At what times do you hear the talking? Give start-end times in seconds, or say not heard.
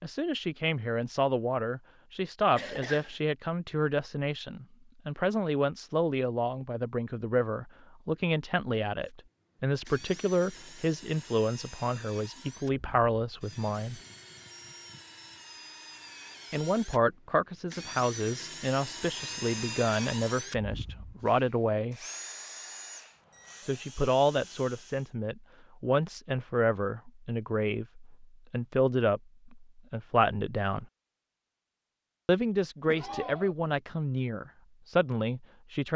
0.0-14.0, 16.5-22.0, 23.6-30.9, 32.2-35.9.